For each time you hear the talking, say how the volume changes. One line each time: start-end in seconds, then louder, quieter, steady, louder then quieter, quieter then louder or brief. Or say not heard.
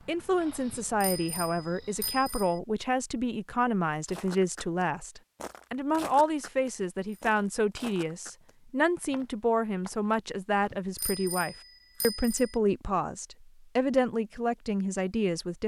0.1-15.6 steady.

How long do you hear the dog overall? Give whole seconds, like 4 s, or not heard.
not heard.